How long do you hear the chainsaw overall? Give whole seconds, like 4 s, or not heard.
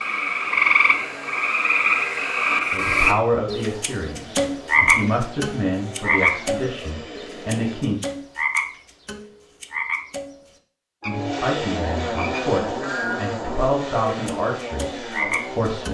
13 s.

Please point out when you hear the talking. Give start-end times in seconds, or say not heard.
2.7-8.0, 11.1-15.9.